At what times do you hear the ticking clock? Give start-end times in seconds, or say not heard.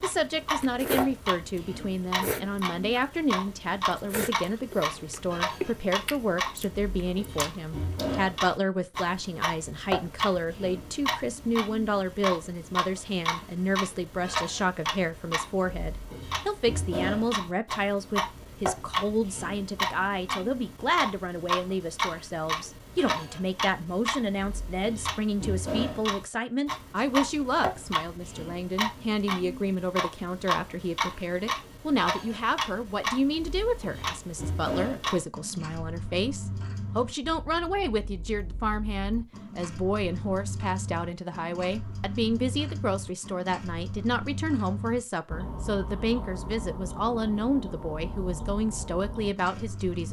0.0-50.0.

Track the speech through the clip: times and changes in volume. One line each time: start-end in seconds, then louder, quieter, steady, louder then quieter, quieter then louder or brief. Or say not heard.
0.0-50.0 steady.